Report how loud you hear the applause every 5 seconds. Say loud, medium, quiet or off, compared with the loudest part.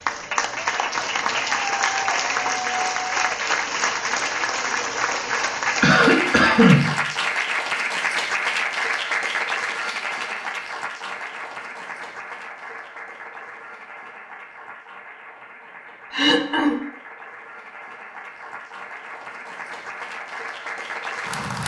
loud, loud, medium, quiet, medium.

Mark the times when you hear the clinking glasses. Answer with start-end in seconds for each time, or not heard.
not heard.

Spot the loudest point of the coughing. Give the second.
7 s.